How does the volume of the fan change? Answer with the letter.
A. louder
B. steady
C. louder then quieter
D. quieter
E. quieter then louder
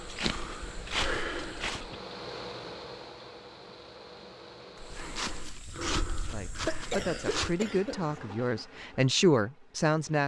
C.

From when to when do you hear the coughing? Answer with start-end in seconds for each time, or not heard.
1.6-2.0, 5.7-8.2.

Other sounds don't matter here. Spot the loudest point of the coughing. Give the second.
7 s.